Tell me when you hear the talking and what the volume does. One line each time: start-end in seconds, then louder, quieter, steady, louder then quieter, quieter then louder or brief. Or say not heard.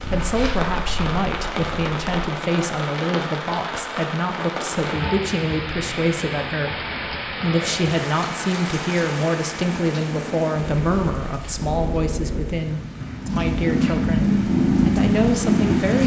0.1-16.0 steady.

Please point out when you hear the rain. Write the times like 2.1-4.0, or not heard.
0.0-16.0.